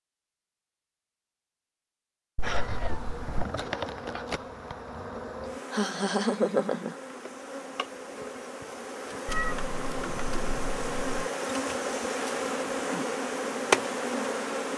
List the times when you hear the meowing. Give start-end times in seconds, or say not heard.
2.4-3.5, 9.2-11.3.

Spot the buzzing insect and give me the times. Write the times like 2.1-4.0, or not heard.
2.4-14.7.